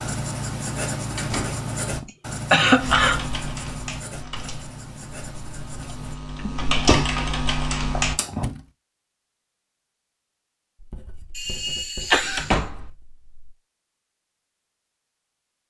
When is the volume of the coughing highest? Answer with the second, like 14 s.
3 s.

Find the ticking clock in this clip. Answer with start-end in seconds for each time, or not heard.
not heard.